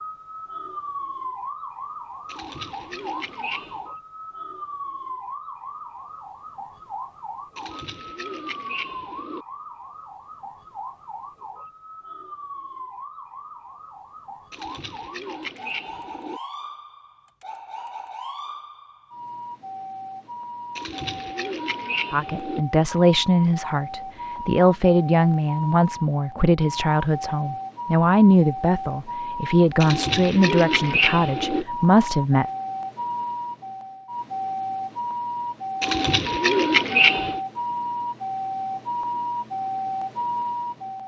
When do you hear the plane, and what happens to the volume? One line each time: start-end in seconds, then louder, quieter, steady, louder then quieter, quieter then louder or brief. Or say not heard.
not heard.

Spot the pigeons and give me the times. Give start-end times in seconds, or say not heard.
2.2-3.9, 7.5-9.4, 14.5-16.4, 20.8-22.6, 29.8-31.6, 35.8-37.4.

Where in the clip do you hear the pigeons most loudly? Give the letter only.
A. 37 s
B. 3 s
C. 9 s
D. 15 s
A.